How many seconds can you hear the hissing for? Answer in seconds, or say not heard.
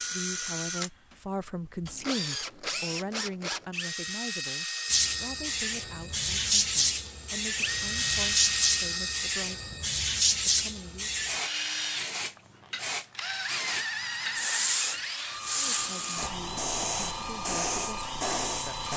14 s.